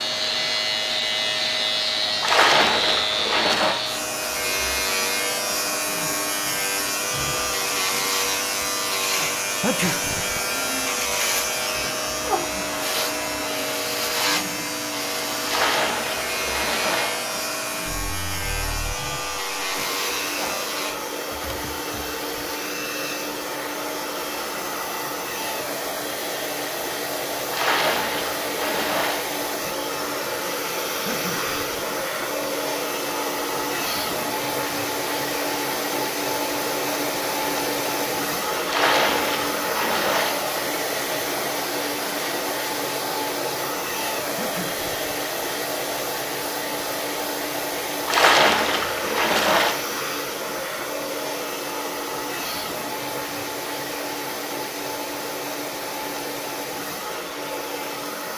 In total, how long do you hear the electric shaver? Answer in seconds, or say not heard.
21 s.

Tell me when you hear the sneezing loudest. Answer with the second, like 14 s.
10 s.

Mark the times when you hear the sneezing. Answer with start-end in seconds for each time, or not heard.
9.6-10.4, 31.1-31.8, 44.4-45.1.